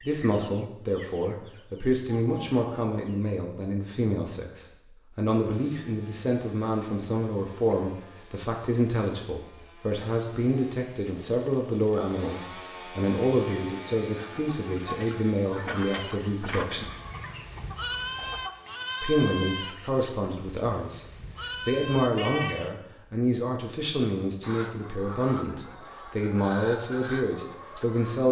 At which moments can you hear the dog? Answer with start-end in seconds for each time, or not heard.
not heard.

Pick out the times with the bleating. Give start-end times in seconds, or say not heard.
15.7-22.7.